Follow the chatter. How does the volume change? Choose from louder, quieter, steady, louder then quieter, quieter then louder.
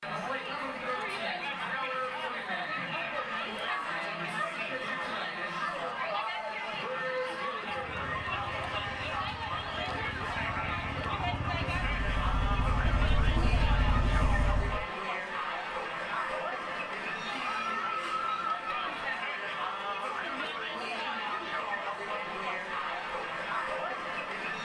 steady.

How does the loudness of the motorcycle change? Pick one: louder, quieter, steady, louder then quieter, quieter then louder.
louder.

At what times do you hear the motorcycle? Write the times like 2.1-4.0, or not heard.
7.7-14.8.